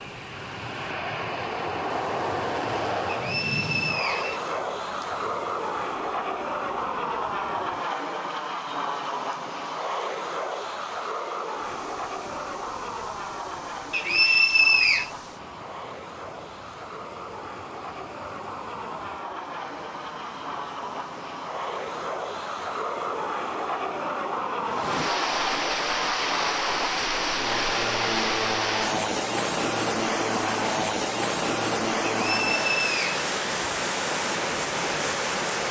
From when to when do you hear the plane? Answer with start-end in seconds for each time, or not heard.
0.0-32.7.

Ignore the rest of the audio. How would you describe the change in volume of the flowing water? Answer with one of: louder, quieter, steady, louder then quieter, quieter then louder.
louder.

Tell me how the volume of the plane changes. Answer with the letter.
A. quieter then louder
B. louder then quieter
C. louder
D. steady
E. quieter
A.